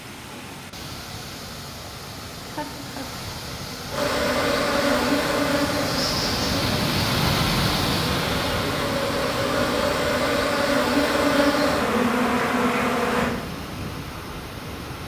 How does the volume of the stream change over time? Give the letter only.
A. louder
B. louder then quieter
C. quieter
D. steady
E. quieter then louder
B.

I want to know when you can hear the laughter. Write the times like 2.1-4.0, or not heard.
2.5-3.1.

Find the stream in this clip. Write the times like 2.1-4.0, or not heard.
0.0-15.0.